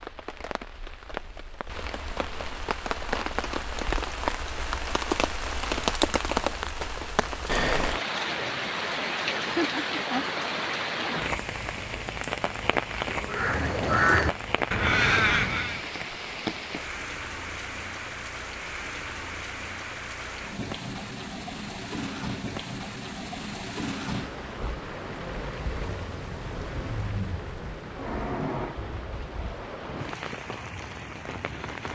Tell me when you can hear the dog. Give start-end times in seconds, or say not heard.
not heard.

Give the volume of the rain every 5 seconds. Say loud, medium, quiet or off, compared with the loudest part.
medium, loud, loud, medium, medium, medium, medium.